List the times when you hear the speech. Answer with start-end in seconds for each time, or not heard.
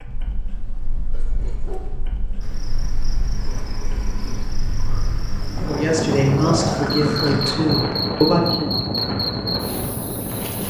5.5-8.7.